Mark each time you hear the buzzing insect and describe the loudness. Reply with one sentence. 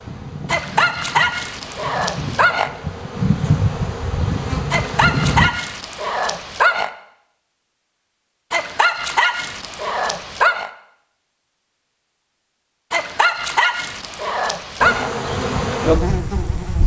The buzzing insect can be heard from 0.0 to 5.5 s, getting louder; and briefly from 14.8 to 16.8 s.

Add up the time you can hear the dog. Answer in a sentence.
You can hear the dog for 9 seconds altogether.